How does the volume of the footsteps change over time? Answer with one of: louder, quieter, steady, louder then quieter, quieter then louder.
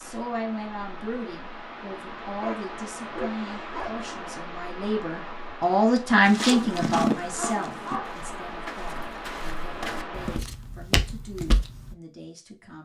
quieter then louder.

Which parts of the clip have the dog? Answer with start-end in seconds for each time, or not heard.
2.4-4.0, 6.5-8.2.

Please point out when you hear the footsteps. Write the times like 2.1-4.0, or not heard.
6.2-11.9.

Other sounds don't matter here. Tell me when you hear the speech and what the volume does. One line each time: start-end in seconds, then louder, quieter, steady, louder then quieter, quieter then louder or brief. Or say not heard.
0.0-12.8 louder then quieter.